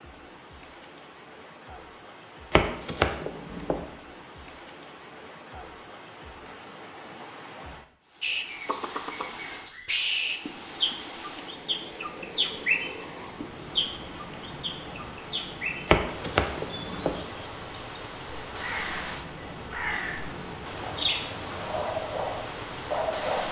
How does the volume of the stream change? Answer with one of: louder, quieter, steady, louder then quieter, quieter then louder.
louder.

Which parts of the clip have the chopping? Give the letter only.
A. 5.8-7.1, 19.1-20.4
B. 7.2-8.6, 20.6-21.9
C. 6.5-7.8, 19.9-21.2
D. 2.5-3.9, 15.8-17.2
D.